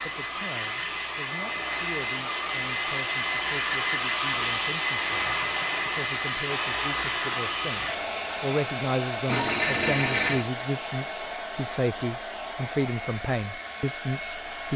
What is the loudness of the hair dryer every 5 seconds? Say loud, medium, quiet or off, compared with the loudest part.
loud, loud, medium.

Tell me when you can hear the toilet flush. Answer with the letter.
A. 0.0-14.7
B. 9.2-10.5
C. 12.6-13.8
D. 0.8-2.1
B.